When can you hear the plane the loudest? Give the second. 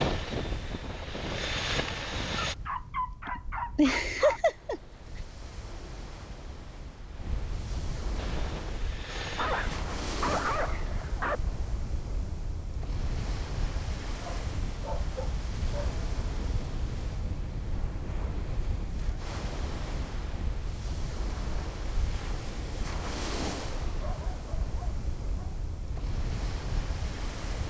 2 s.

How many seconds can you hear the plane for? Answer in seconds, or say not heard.
4 s.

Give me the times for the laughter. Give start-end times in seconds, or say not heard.
3.2-4.8.